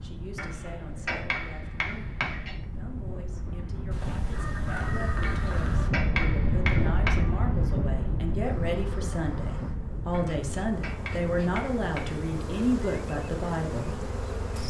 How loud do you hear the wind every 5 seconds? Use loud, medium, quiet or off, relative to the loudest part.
medium, loud, medium.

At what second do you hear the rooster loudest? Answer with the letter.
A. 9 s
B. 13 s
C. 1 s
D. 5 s
D.